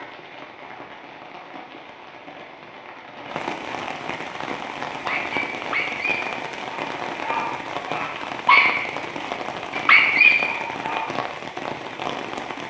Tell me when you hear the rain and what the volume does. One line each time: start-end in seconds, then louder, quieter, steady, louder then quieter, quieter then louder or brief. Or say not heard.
0.0-12.6 louder.